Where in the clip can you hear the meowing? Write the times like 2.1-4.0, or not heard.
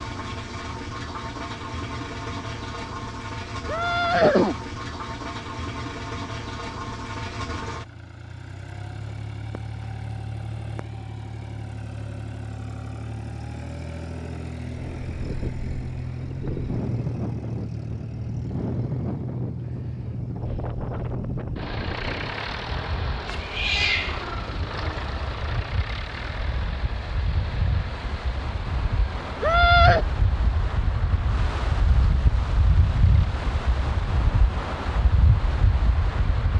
23.2-24.2.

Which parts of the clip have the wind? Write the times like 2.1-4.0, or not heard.
14.7-36.5.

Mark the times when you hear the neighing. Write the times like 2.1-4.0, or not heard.
3.6-4.5, 29.4-30.1.